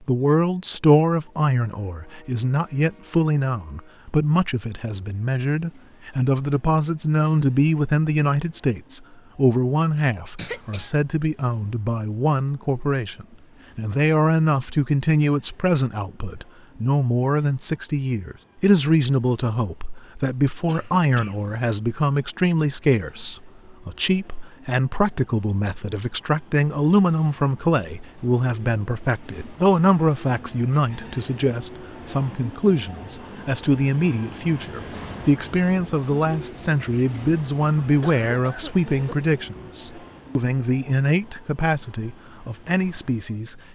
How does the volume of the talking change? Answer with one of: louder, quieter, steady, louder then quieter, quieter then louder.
steady.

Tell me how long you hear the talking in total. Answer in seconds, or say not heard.
44 s.